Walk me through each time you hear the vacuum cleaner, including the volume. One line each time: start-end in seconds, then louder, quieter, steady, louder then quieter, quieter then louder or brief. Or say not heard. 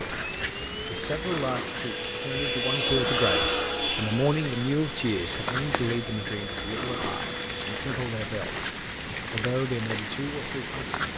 0.1-8.0 louder then quieter.